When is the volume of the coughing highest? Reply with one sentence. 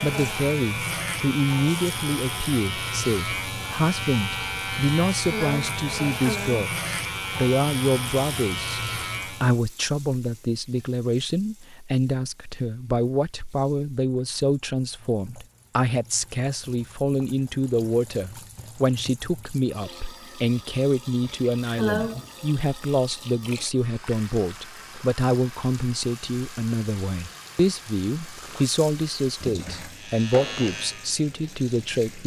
The loudest moment of the coughing is at 22 seconds.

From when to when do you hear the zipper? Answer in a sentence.
You can't hear the zipper here.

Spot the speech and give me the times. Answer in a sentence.
You can hear the speech from 0.0 to 32.2 s.